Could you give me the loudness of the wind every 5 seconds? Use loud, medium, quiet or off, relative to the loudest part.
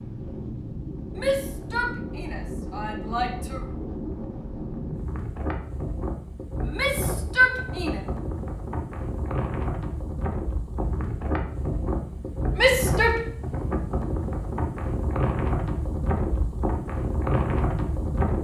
medium, medium, loud, loud.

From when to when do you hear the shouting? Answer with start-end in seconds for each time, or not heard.
1.1-3.6, 6.6-8.0, 12.6-13.2.